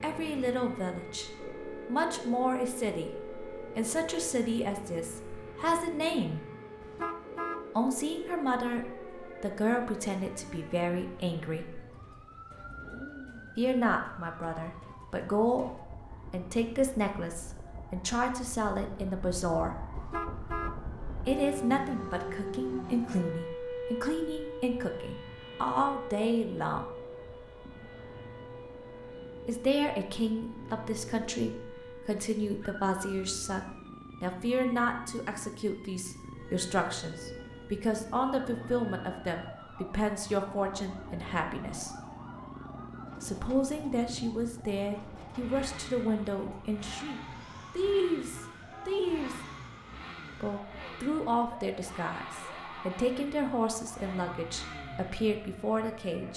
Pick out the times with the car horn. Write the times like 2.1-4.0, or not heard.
6.8-7.6, 19.9-20.8, 48.2-49.0.